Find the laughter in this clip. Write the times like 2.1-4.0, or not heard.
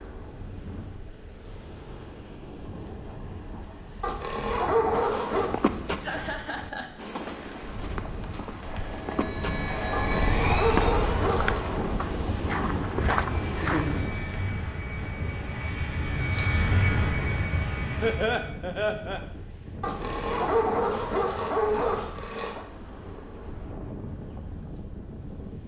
6.0-6.9, 13.6-14.3, 18.0-19.2.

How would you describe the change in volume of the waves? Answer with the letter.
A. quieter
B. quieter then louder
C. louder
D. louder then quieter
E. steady
D.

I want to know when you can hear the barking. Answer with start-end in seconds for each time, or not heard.
4.0-5.5, 9.9-11.6, 19.8-22.6.